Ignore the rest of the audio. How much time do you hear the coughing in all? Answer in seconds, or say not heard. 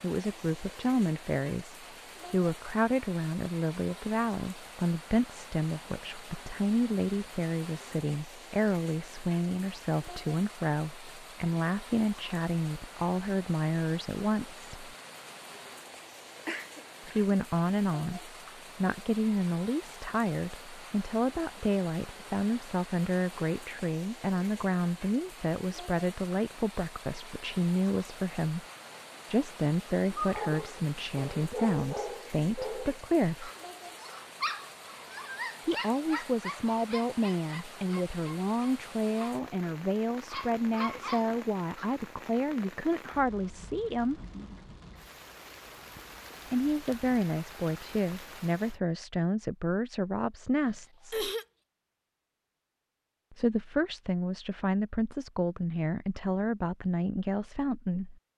2 s.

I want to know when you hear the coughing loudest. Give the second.
51 s.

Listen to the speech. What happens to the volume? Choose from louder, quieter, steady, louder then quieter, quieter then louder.
steady.